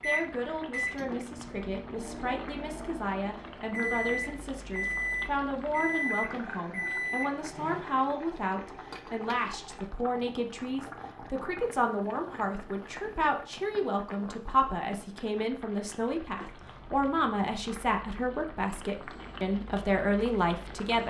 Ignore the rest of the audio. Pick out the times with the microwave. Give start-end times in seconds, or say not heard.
0.0-7.8.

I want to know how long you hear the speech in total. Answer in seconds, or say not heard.
21 s.